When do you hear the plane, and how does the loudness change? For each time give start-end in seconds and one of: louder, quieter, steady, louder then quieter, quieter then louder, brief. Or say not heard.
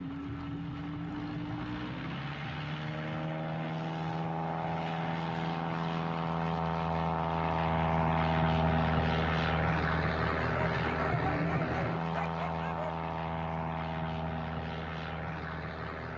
0.0-16.1 louder then quieter.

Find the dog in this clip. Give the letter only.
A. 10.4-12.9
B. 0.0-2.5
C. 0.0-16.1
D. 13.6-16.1
A.